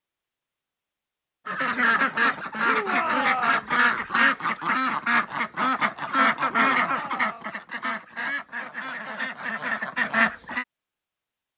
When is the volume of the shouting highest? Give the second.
3 s.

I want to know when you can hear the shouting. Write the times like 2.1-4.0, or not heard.
2.6-3.7, 6.5-7.5.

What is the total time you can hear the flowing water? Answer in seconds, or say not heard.
not heard.